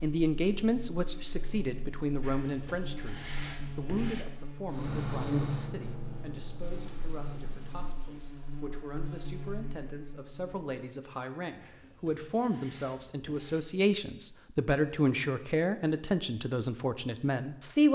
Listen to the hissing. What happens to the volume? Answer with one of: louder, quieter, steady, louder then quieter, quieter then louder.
quieter.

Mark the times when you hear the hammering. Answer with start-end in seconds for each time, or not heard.
not heard.